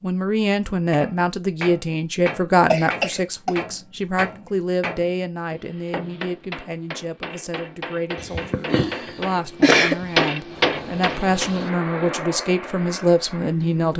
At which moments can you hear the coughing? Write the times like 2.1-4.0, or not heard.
2.7-3.5, 8.2-10.1.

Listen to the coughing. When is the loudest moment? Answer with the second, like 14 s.
10 s.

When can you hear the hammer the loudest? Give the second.
10 s.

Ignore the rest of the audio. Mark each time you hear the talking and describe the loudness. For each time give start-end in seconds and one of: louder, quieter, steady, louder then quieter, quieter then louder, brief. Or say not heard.
0.0-13.9 quieter then louder.